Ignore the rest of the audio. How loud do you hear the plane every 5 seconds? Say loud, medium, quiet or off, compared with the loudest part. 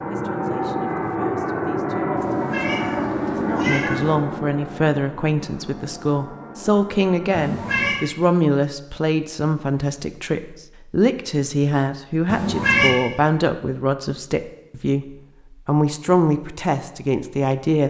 loud, quiet, off, off.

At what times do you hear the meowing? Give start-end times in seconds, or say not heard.
2.1-4.2, 7.3-8.0, 12.2-12.9.